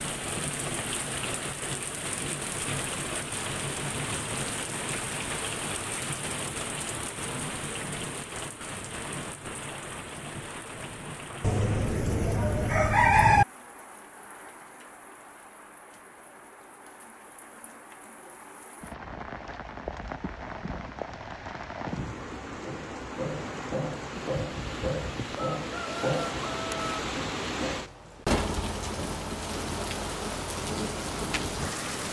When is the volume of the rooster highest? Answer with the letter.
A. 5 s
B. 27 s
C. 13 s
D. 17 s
C.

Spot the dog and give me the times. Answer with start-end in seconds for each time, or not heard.
not heard.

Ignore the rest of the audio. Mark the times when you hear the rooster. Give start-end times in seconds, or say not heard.
11.4-13.4, 25.6-27.0.